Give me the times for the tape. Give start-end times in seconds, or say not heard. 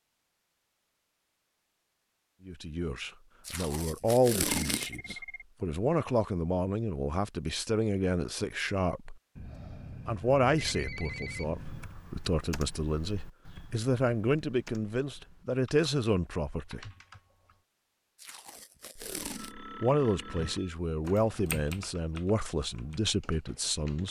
3.5-5.2, 18.1-19.6.